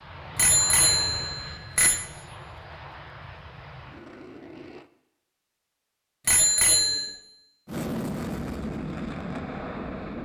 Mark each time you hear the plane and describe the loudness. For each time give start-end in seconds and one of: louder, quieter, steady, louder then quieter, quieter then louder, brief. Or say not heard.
0.0-4.9 quieter
7.7-10.2 brief.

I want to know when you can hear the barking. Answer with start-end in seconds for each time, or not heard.
not heard.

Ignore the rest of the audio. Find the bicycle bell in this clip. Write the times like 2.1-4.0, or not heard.
0.3-2.0, 6.2-7.2.